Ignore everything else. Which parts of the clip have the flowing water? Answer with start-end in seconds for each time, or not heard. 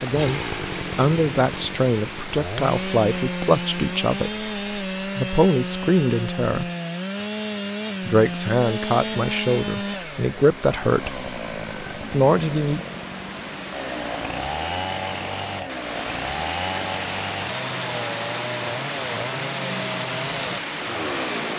0.0-21.5.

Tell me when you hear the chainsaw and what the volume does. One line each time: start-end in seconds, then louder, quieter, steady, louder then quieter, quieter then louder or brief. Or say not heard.
0.0-21.5 steady.